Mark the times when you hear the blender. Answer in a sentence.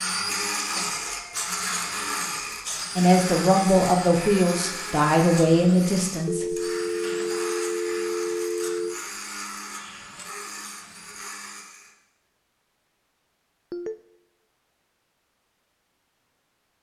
You can hear the blender from 0.0 to 11.9 s.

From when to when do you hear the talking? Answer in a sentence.
You can hear the talking from 3.0 to 6.5 s.